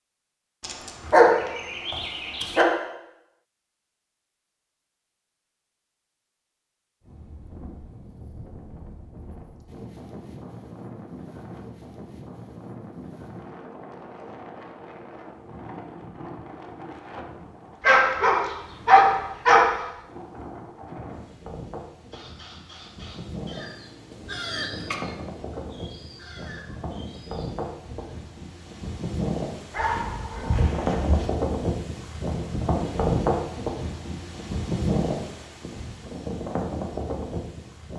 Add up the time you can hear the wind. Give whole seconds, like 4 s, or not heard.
31 s.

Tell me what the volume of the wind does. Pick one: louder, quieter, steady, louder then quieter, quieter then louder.
louder.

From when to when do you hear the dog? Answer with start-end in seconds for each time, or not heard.
0.6-2.6, 17.8-19.6, 29.7-31.2.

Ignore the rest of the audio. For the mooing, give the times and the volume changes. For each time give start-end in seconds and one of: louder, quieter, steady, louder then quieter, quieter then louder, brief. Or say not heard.
not heard.